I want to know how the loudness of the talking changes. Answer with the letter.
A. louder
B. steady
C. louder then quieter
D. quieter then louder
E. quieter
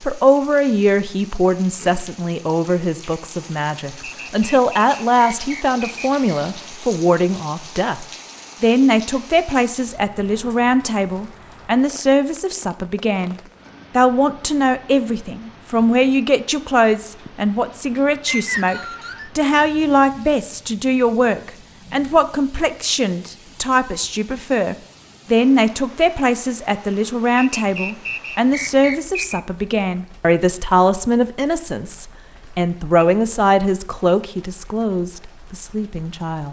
B.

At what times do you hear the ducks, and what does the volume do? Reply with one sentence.
The ducks can't be heard in this clip.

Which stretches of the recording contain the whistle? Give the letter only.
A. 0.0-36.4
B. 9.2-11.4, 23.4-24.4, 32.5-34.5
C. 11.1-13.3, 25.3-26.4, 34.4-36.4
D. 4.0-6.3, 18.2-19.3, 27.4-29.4
D.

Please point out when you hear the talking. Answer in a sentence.
You can hear the talking from 0.0 to 36.4 s.